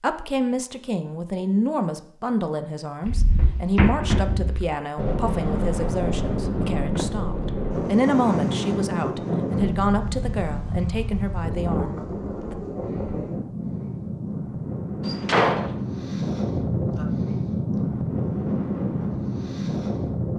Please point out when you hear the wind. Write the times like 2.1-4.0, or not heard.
5.0-20.3.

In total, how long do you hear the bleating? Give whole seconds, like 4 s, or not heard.
not heard.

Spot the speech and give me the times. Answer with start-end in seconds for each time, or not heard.
0.0-12.6.